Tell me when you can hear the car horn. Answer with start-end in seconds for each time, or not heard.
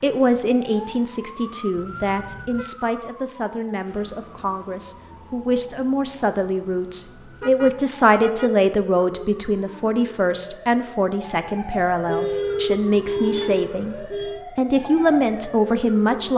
1.8-2.7, 7.4-8.6, 11.7-14.4.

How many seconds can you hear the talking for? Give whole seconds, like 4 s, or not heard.
16 s.